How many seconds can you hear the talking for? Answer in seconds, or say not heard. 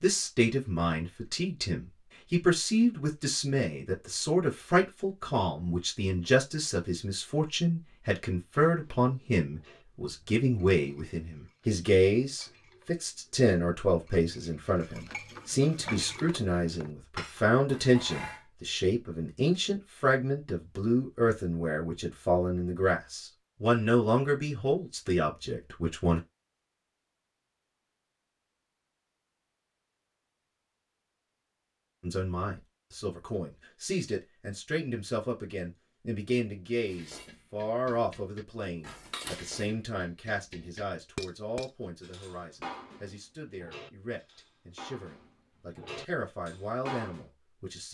42 s.